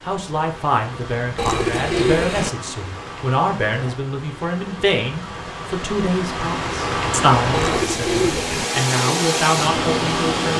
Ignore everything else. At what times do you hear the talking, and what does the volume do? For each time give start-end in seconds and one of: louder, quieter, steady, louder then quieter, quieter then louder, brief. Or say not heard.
0.0-10.5 steady.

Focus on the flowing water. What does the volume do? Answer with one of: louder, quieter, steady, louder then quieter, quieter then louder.
louder.